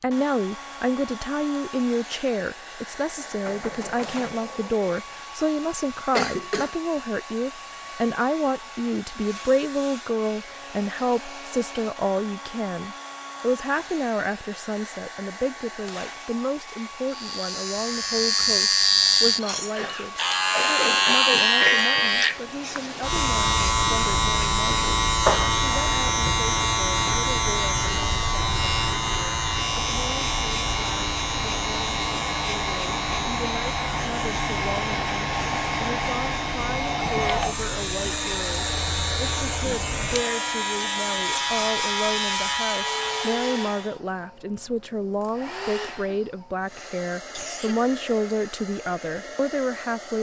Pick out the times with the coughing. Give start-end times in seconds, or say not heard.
6.2-6.8, 19.7-21.7, 45.9-47.8.